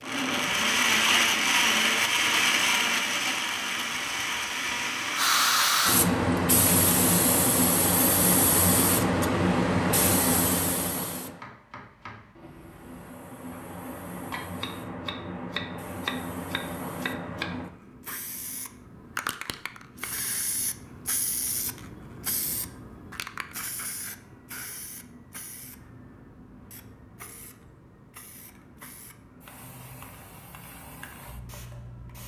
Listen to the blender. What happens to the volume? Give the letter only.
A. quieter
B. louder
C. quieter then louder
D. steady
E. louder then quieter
A.